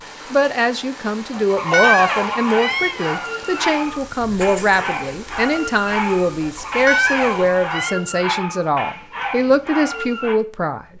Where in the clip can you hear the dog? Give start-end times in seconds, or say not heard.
1.5-10.4.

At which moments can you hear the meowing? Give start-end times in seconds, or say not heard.
1.7-3.1, 6.8-8.0.